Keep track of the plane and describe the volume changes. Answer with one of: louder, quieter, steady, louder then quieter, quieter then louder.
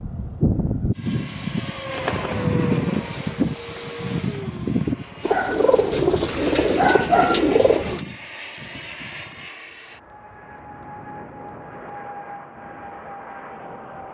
quieter.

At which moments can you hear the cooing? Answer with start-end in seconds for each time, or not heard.
5.2-8.1.